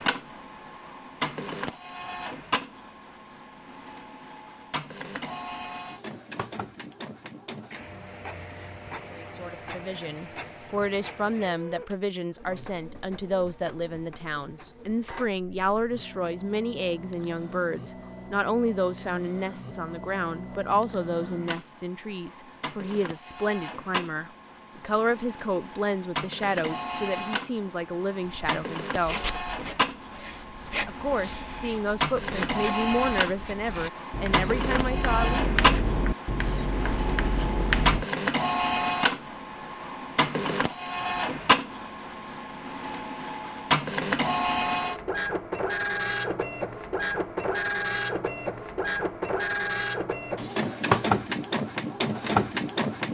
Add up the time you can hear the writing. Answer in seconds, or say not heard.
10 s.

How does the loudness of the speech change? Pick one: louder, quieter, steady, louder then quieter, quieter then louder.
steady.